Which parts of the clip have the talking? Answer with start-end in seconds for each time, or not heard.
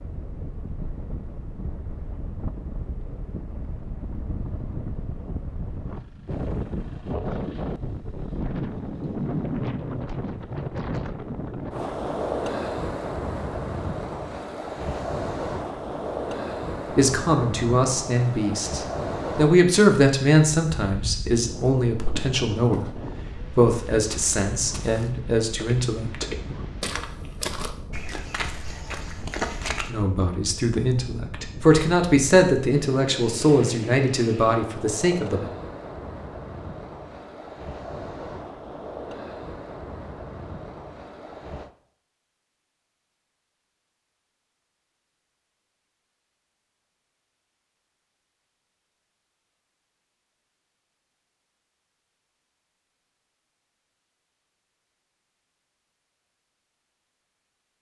16.9-26.6, 29.9-35.5.